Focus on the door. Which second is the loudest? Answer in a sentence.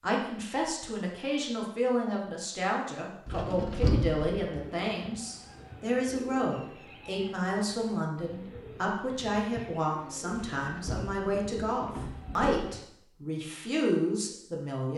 The volume of the door peaks at 4 seconds.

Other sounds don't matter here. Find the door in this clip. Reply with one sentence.
You can hear the door from 3.2 to 4.5 s and from 10.3 to 12.7 s.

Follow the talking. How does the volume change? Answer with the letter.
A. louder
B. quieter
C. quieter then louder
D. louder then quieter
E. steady
E.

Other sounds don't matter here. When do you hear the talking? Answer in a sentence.
The talking can be heard from 0.0 to 14.9 s.